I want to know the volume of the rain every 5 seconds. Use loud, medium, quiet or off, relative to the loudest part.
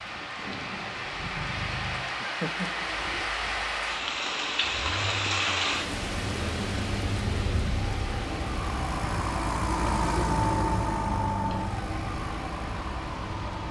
loud, loud, medium.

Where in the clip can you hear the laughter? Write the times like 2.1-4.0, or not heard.
2.2-2.9.